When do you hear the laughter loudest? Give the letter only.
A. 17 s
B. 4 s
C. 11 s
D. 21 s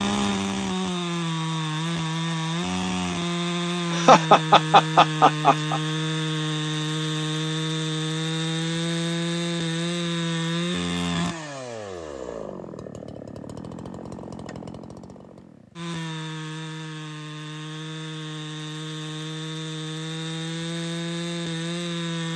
B.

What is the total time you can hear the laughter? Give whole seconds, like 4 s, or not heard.
2 s.